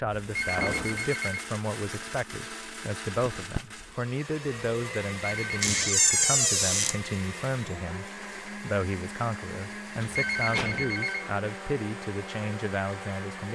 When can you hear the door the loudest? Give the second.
6 s.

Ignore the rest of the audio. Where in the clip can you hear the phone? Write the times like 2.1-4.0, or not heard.
0.3-1.5, 5.2-6.3, 10.1-11.3.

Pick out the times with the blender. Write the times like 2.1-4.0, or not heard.
0.0-13.4.